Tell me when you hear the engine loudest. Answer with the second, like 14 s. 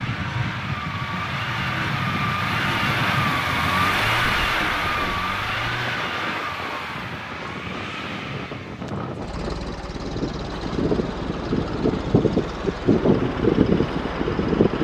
4 s.